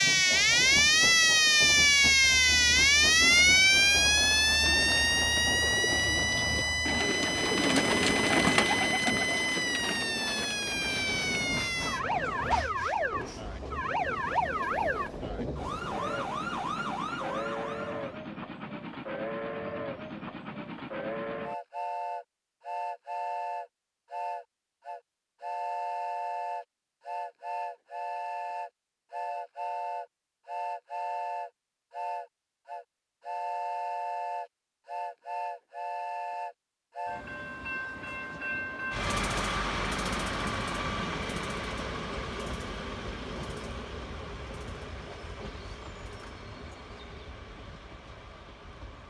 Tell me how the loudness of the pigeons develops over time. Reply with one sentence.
The loudness of the pigeons goes up, then down.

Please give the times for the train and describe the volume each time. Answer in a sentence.
You can hear the train from 0.0 to 49.0 s, at a steady volume.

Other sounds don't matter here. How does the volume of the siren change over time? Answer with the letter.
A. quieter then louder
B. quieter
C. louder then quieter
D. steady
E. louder
B.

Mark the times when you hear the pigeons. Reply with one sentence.
The pigeons can be heard from 4.6 to 11.4 s.